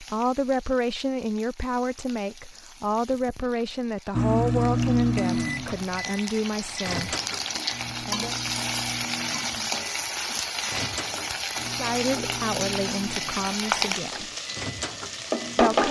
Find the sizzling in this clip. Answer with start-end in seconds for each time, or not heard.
0.0-15.8.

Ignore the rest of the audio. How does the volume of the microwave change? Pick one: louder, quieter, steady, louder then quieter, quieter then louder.
quieter.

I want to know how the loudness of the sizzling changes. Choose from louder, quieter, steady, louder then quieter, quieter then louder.
louder.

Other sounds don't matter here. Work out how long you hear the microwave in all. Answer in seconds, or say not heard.
12 s.